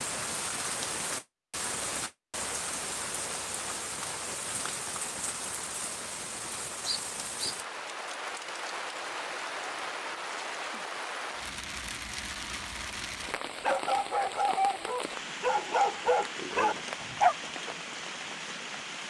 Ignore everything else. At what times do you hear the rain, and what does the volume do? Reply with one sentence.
The rain can be heard from 0.0 to 19.0 s, at a steady volume.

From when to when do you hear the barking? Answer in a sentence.
You can hear the barking from 13.6 to 17.4 s.